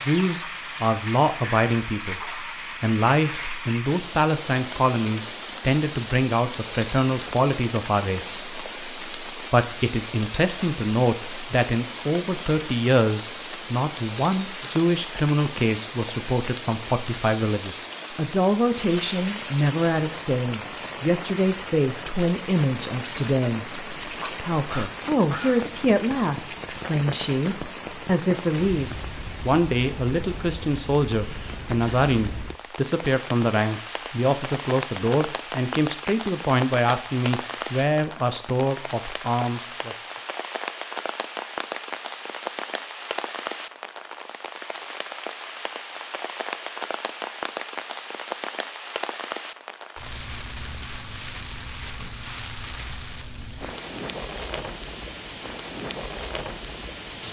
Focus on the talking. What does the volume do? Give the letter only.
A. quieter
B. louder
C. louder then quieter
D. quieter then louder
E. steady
E.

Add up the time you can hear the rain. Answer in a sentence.
The rain can be heard for 57 seconds in total.